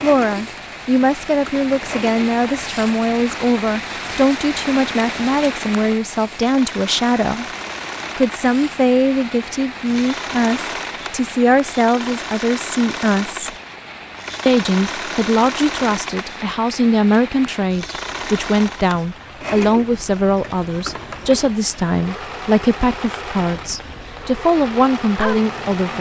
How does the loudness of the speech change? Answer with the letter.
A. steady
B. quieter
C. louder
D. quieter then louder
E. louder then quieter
A.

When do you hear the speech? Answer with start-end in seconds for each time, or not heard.
0.0-7.5, 8.2-13.5, 14.4-25.9.